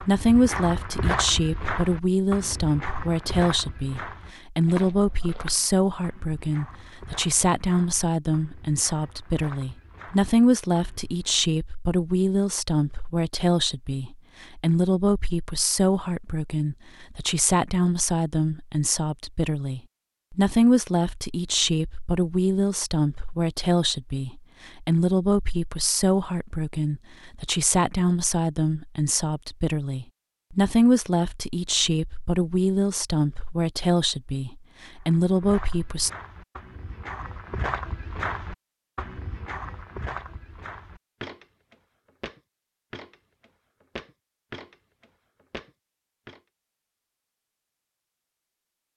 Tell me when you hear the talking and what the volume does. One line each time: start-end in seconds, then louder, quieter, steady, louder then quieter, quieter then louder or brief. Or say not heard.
0.0-36.1 steady.